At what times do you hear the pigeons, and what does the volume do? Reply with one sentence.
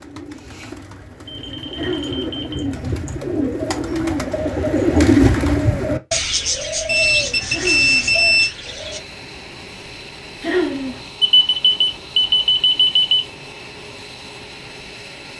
The pigeons can be heard from 0.0 to 9.0 s, getting louder then quieter.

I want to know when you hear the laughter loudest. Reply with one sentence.
The loudest moment of the laughter is at 11 seconds.